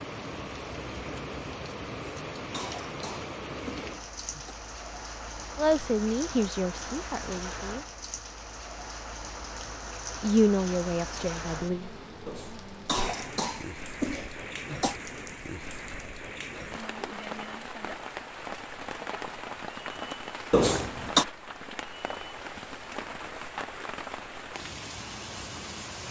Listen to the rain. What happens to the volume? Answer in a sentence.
The loudness of the rain stays about the same.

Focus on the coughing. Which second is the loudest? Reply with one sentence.
The volume of the coughing peaks at 21 seconds.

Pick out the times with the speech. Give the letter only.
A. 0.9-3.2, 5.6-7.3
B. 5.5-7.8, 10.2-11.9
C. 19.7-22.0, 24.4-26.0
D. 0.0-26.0
B.